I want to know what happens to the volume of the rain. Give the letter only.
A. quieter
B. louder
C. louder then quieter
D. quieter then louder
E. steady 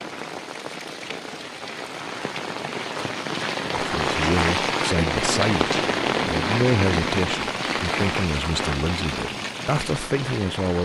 C.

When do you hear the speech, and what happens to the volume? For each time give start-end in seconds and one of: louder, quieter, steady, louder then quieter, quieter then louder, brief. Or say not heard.
3.8-10.8 steady.